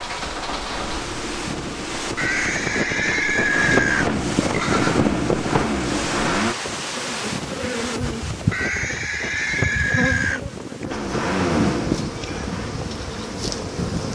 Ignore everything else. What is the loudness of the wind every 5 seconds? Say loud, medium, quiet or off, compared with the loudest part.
loud, loud, medium.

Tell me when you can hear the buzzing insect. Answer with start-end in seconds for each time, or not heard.
7.0-14.1.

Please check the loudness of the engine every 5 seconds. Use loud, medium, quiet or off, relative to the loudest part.
medium, loud, loud.